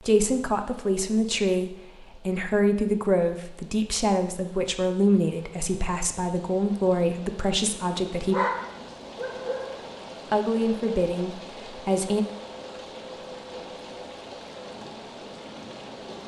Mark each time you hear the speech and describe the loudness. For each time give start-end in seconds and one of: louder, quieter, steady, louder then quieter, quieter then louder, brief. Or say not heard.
0.1-8.3 steady
10.3-12.2 brief.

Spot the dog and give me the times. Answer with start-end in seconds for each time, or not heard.
8.3-9.8.